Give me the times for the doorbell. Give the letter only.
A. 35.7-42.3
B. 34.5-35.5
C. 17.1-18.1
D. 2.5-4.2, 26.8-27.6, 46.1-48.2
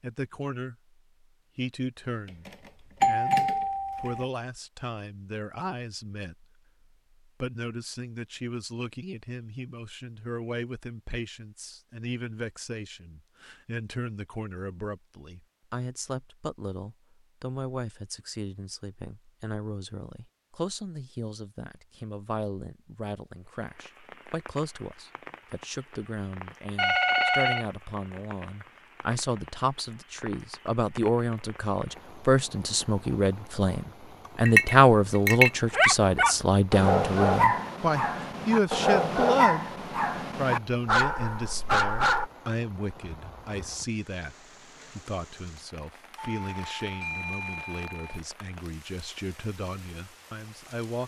D.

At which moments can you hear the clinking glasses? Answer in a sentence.
The clinking glasses can be heard from 34.5 to 35.5 s.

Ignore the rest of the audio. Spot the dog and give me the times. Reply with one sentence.
You can hear the dog from 35.7 to 42.3 s.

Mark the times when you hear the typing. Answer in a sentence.
The typing can't be heard in this clip.